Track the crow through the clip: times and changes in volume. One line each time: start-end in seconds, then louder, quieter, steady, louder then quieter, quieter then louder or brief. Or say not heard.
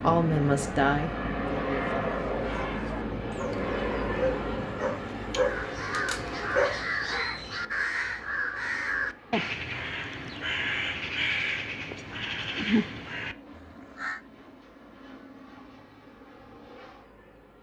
5.4-14.2 steady.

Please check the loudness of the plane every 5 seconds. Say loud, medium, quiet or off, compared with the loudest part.
loud, medium, quiet, quiet.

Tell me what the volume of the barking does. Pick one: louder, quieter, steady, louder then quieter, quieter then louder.
louder.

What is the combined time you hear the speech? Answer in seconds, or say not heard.
2 s.